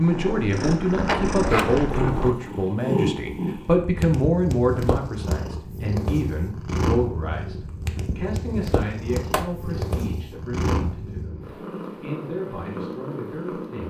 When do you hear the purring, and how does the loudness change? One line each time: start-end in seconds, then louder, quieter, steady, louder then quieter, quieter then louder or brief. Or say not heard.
0.0-13.8 quieter.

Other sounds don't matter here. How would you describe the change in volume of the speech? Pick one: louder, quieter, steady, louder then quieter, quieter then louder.
quieter.